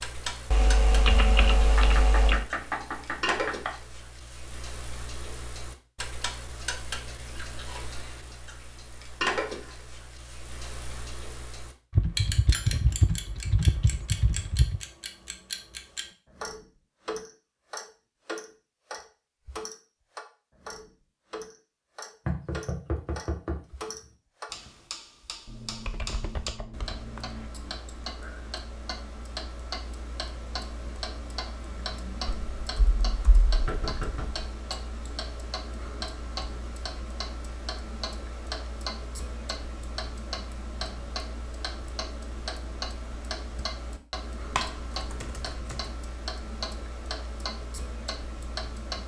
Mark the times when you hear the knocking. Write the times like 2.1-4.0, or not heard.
1.8-3.7, 22.2-23.6, 33.6-34.3.